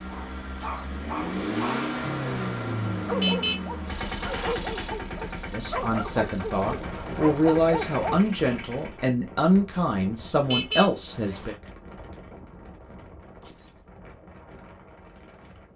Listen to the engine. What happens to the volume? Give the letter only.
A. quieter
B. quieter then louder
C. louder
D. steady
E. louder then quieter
A.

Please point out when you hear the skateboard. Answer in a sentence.
You can't hear the skateboard here.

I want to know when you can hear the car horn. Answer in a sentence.
You can hear the car horn from 3.1 to 4.5 s and from 10.4 to 11.6 s.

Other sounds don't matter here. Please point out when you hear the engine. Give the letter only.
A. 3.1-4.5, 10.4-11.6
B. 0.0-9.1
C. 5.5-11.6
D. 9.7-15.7
B.